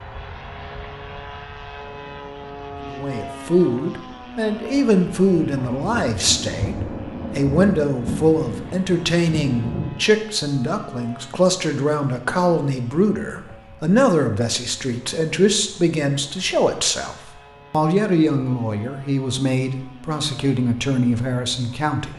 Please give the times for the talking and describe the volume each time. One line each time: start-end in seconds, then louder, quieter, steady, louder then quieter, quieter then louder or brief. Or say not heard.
2.9-22.1 steady.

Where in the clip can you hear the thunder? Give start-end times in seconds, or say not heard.
5.5-10.1.